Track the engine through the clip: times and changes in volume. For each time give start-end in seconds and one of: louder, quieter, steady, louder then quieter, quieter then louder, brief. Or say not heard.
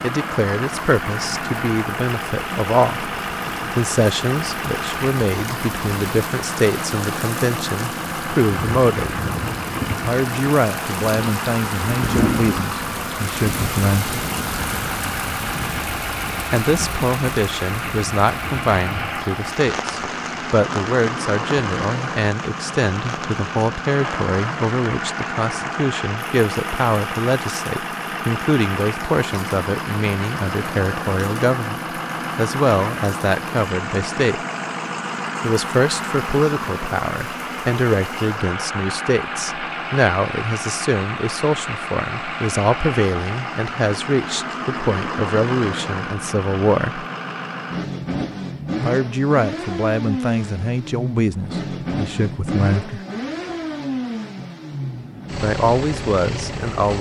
0.0-56.9 steady.